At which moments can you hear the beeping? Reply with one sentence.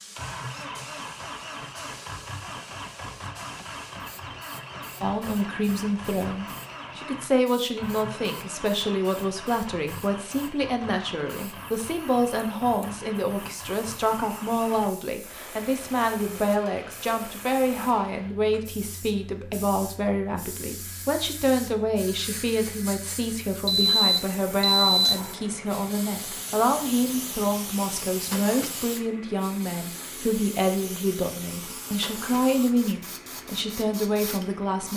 The beeping can be heard from 23.6 to 25.1 s.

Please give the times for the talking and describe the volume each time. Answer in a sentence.
You can hear the talking from 5.0 to 34.9 s, at a steady volume.